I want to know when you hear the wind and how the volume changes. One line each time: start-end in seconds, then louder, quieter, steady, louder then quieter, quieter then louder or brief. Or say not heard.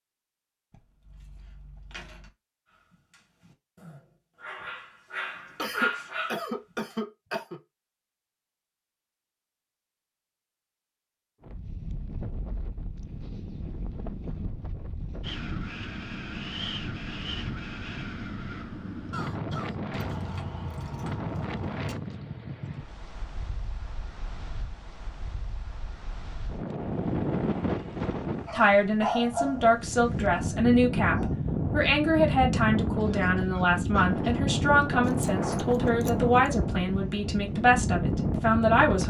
11.4-39.0 louder.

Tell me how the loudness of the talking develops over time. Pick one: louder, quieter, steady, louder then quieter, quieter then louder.
steady.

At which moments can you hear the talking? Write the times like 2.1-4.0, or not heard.
28.5-39.0.